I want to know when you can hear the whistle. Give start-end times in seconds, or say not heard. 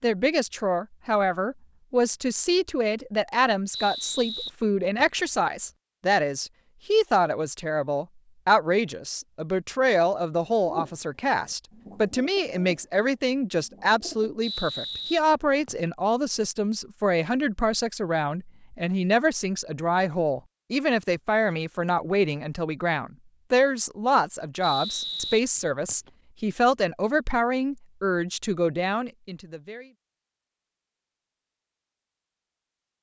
3.7-5.2, 14.4-15.9, 24.6-26.1.